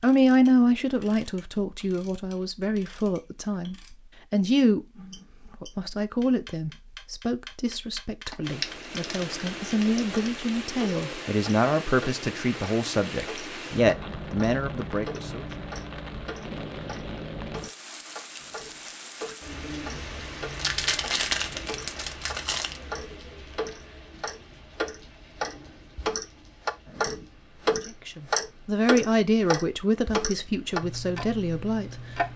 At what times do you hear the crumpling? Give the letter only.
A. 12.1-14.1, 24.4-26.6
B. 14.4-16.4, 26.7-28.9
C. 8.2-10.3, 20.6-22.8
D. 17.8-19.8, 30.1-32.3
C.